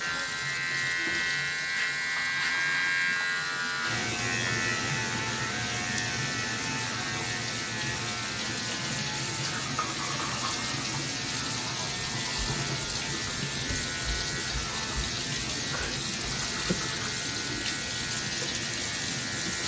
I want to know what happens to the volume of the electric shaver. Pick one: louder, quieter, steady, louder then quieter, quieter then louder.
quieter.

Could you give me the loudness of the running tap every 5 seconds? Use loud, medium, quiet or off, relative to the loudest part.
medium, loud, loud, loud.